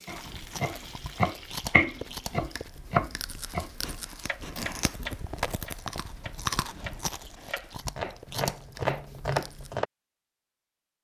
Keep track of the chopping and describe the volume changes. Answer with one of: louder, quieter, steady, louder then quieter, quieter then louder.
quieter then louder.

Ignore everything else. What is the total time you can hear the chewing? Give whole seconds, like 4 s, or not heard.
10 s.